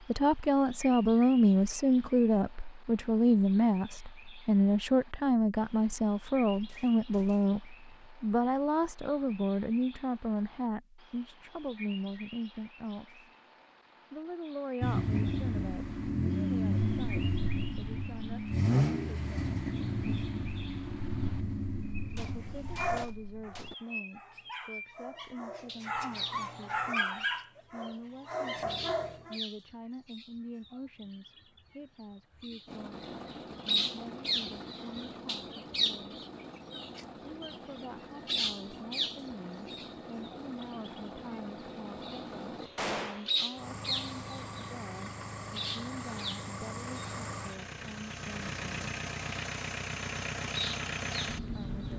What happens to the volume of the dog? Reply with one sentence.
The volume of the dog goes down, then up.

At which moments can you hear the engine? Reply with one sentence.
You can hear the engine from 14.8 to 23.8 s and from 32.6 to 51.9 s.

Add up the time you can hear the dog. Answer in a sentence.
You can hear the dog for 7 seconds altogether.